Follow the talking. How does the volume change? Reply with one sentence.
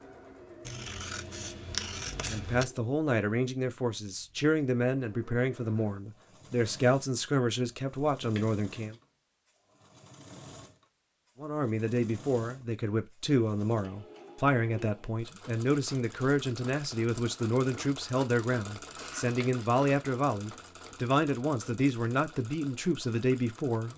The loudness of the talking stays about the same.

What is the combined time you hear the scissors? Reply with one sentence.
The scissors can be heard for 4 seconds in total.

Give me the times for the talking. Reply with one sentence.
The talking can be heard from 2.2 to 8.9 s and from 11.4 to 23.9 s.